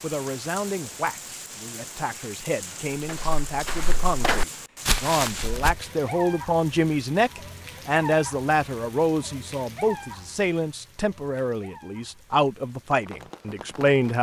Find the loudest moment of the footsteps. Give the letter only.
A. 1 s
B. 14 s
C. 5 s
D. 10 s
C.